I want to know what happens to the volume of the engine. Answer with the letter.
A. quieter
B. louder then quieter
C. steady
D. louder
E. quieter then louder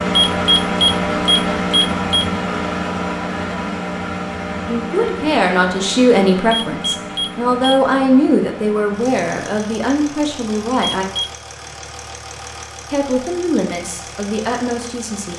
A.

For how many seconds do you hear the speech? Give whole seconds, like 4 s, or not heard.
9 s.